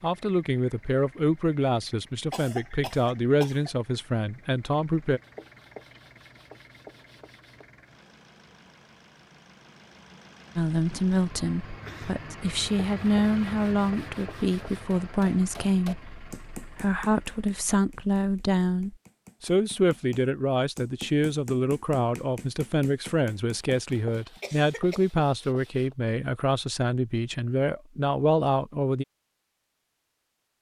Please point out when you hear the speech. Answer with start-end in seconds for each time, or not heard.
0.0-5.2, 10.6-29.1.